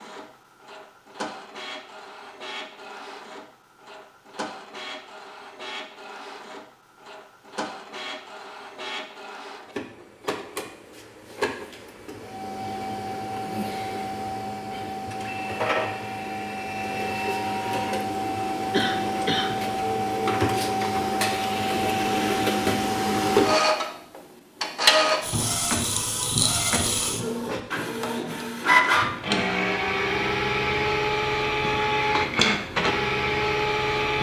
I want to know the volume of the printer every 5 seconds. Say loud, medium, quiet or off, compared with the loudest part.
quiet, quiet, medium, medium, loud, loud, loud.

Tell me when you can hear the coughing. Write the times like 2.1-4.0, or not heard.
18.7-19.6.